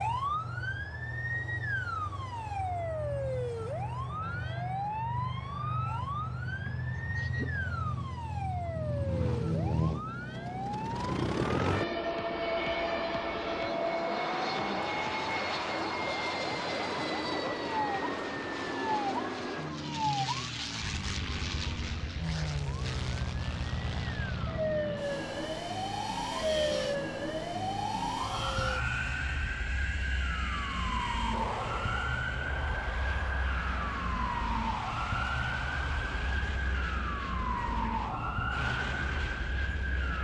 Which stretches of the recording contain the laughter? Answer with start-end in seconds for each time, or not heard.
6.7-7.7.